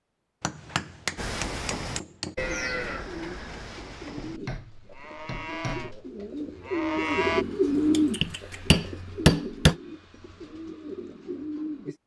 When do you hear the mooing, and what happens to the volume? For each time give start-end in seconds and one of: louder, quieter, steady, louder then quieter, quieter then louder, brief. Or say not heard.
1.1-7.5 quieter then louder.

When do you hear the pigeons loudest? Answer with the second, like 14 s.
8 s.